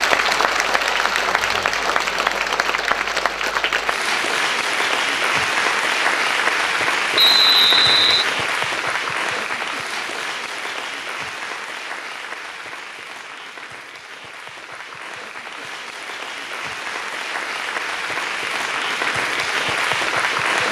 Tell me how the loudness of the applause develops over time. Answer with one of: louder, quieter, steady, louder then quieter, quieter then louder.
quieter then louder.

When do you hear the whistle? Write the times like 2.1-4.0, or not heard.
7.2-8.2.